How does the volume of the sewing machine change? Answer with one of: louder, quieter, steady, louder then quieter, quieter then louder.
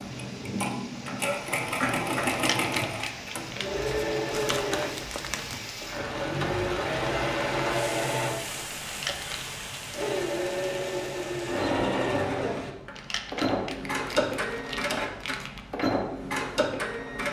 steady.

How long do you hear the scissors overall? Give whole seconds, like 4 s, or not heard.
3 s.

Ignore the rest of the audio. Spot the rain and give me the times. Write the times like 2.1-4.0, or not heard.
0.0-12.8.